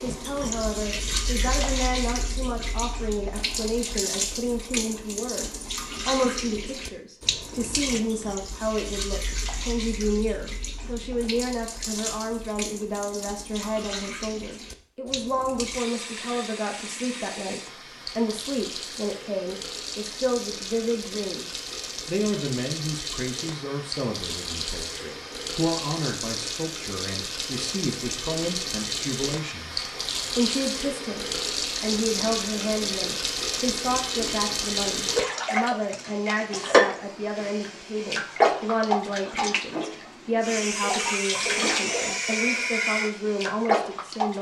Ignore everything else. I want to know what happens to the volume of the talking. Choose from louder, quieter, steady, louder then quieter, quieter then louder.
steady.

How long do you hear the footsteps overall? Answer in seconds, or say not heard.
not heard.